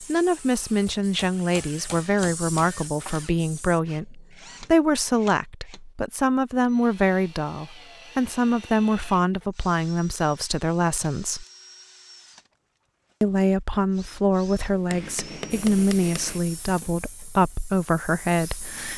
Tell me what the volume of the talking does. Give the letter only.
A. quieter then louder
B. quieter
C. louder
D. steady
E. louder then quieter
D.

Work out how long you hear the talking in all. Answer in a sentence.
You can hear the talking for 17 seconds altogether.